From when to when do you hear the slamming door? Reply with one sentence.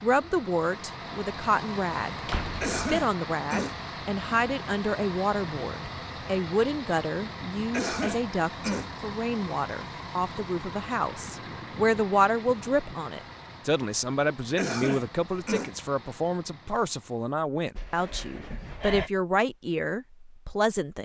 You can hear the slamming door from 2.2 to 2.8 s and from 17.8 to 19.1 s.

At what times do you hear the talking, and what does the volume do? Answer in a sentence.
The talking can be heard from 0.0 to 21.0 s, at a steady volume.